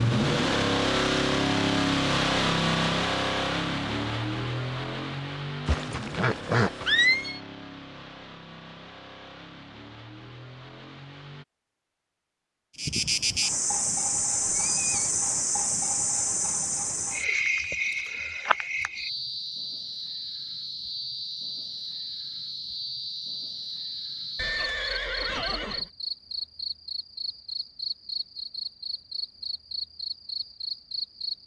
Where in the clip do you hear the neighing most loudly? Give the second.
7 s.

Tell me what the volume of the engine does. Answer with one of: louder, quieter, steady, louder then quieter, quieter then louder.
quieter.